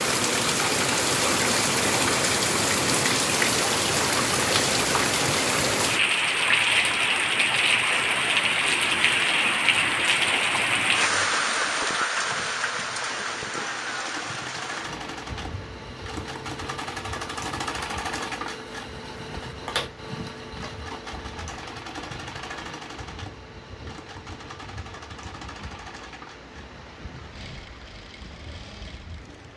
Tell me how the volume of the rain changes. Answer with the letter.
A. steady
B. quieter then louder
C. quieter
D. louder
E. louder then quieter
C.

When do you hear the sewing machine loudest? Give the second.
18 s.